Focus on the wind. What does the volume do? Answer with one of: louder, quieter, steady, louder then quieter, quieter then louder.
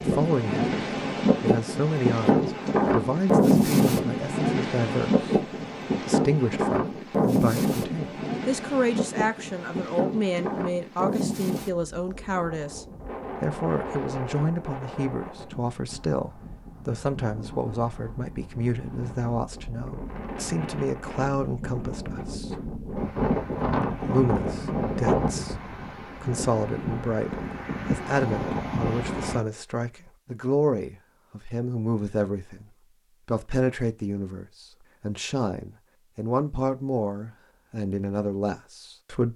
quieter then louder.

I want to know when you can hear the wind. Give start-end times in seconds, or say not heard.
0.0-29.4.